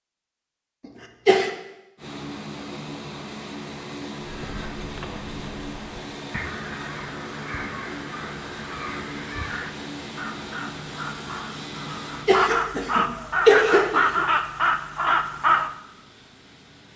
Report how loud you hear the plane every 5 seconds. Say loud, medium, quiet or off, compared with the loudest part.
loud, loud, loud, quiet.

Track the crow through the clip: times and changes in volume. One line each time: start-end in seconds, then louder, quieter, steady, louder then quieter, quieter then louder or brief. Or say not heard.
4.2-15.7 louder.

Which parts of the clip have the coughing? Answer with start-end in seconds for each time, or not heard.
0.8-1.5, 11.8-14.2.